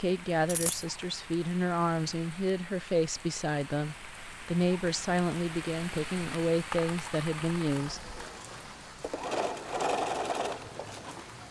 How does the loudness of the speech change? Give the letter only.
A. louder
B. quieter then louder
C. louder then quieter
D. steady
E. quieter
D.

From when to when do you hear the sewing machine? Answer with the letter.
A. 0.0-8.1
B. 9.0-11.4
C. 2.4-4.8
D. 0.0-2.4
B.